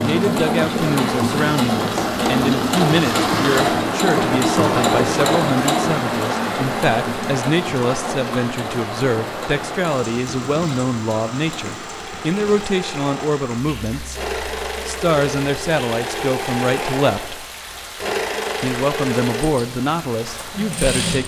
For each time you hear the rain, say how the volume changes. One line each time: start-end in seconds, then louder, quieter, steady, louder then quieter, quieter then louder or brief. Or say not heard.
0.0-20.9 quieter.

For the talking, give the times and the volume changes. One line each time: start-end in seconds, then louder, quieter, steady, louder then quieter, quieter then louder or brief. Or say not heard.
0.0-17.4 steady
18.6-21.2 brief.